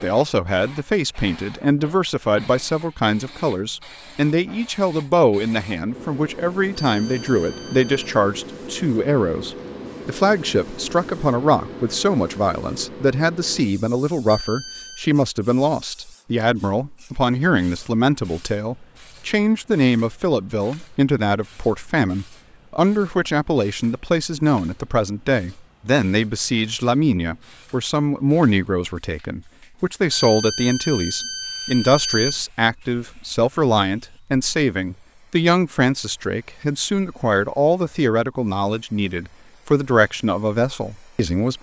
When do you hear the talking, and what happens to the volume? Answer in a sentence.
You can hear the talking from 0.0 to 41.5 s, at a steady volume.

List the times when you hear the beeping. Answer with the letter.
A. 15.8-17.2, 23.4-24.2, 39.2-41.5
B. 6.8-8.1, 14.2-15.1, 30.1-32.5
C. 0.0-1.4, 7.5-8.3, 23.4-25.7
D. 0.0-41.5
B.